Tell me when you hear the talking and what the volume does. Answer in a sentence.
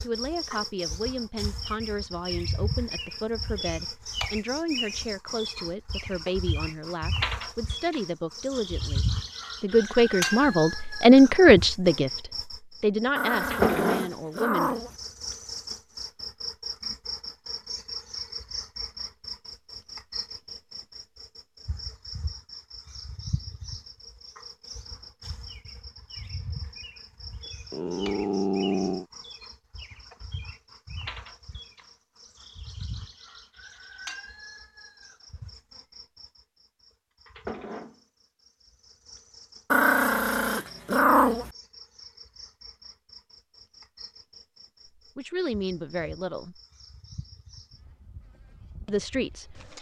You can hear the talking from 0.0 to 14.8 s, getting louder then quieter; briefly from 45.1 to 46.6 s; and briefly from 48.9 to 49.7 s.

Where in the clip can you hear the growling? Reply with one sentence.
You can hear the growling from 13.2 to 14.9 s, from 27.7 to 29.1 s and from 39.7 to 41.5 s.